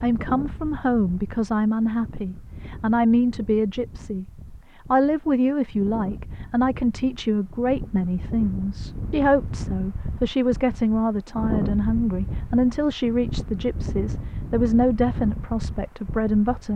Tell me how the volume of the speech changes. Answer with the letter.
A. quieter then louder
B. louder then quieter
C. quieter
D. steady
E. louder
D.